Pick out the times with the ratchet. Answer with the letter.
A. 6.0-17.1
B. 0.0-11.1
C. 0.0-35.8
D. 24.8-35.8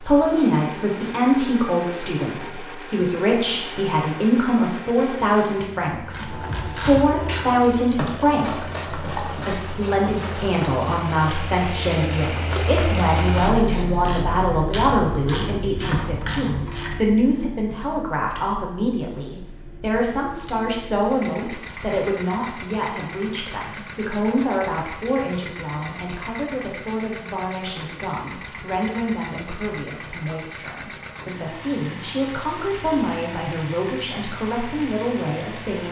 A.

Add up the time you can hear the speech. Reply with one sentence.
The speech can be heard for 36 seconds in total.